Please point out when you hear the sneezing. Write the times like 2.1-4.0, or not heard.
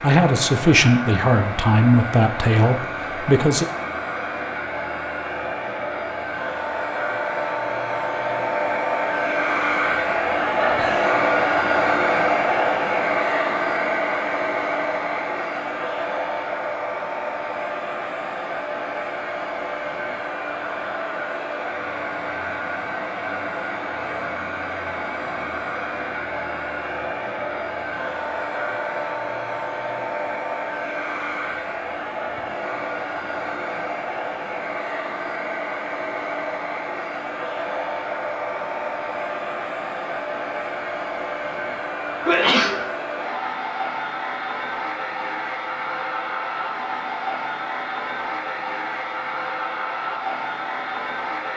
10.6-11.2, 42.2-42.9.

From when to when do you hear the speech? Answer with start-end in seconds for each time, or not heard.
0.0-3.6.